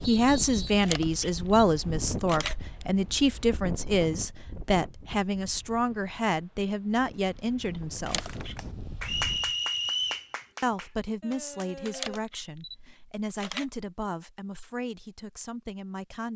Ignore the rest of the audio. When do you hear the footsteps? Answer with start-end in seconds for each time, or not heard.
not heard.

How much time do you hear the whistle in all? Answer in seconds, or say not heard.
2 s.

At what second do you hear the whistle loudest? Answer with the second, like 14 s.
10 s.